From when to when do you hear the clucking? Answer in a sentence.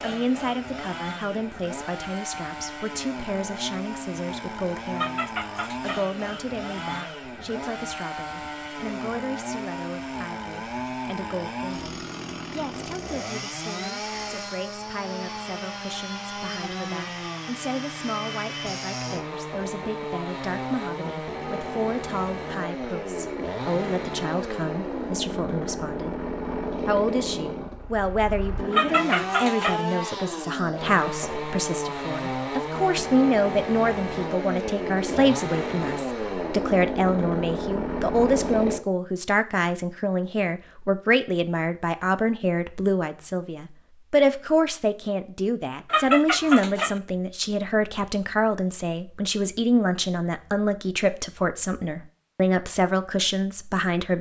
The clucking can be heard from 5.0 to 6.0 s, from 28.7 to 29.8 s and from 45.9 to 47.0 s.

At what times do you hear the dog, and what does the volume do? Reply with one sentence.
You can't hear the dog here.